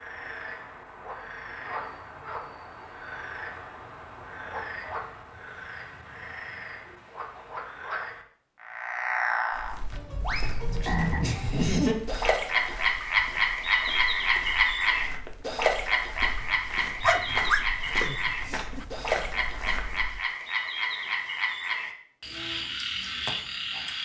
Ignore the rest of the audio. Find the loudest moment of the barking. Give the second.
17 s.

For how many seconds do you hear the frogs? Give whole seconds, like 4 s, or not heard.
24 s.